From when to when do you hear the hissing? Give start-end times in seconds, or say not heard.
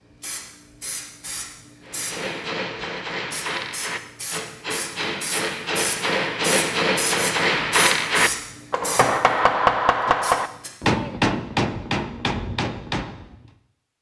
0.2-10.7.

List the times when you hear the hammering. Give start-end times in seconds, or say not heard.
1.9-13.5.